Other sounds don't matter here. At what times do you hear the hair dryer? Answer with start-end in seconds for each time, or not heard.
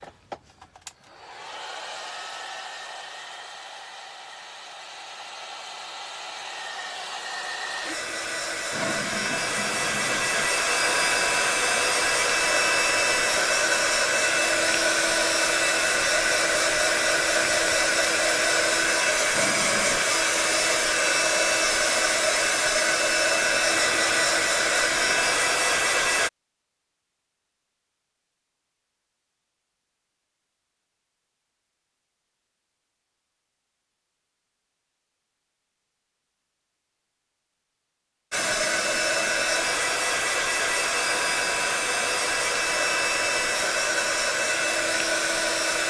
0.0-26.3, 38.3-45.8.